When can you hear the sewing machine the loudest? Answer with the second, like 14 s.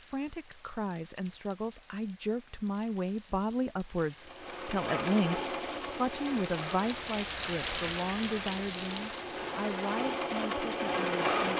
11 s.